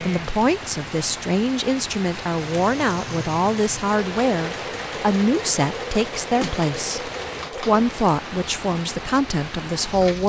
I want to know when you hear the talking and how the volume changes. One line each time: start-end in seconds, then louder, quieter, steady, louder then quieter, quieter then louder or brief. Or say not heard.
0.0-10.2 steady.